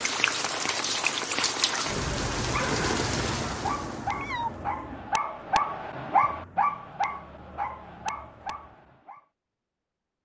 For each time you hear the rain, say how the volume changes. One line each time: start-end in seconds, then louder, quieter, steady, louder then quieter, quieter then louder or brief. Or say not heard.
0.0-9.0 quieter.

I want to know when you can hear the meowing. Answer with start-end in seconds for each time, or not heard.
3.6-5.2.